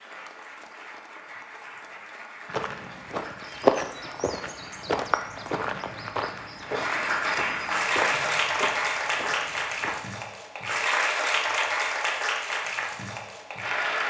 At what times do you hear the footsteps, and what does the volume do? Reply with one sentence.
The footsteps can be heard from 2.5 to 10.0 s, getting quieter.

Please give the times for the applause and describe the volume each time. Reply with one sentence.
The applause can be heard from 0.0 to 14.0 s, getting louder.